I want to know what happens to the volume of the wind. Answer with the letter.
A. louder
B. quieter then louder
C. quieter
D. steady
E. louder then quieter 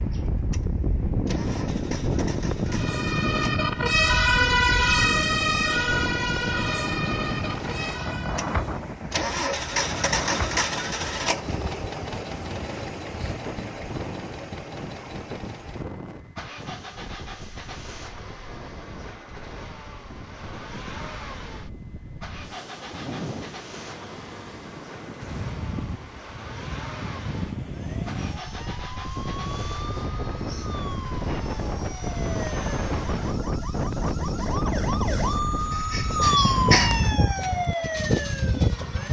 B.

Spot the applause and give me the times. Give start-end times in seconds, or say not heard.
not heard.